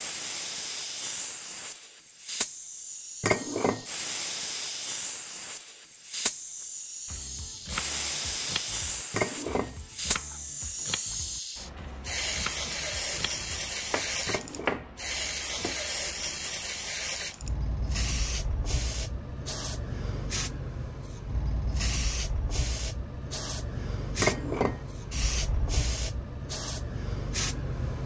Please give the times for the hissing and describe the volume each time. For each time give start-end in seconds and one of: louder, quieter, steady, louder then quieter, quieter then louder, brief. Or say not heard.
0.0-28.0 steady.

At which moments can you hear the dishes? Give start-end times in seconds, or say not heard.
3.2-3.9, 9.1-9.8, 14.2-14.9, 24.2-24.8.